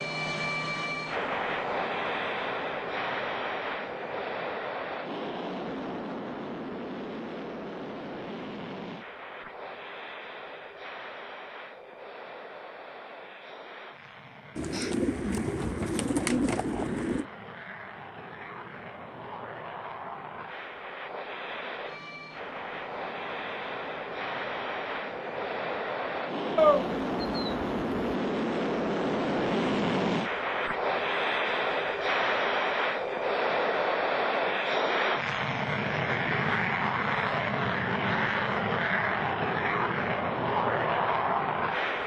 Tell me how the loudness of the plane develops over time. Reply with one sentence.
The volume of the plane goes down, then up.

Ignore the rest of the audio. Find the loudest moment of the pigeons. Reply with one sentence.
The volume of the pigeons peaks at 27 seconds.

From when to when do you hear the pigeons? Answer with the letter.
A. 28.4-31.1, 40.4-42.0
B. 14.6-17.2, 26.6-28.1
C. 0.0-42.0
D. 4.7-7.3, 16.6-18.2
B.